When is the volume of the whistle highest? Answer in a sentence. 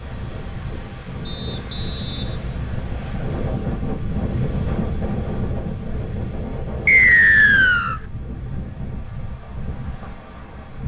The volume of the whistle peaks at 7 seconds.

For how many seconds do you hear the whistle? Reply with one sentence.
You can hear the whistle for 3 seconds altogether.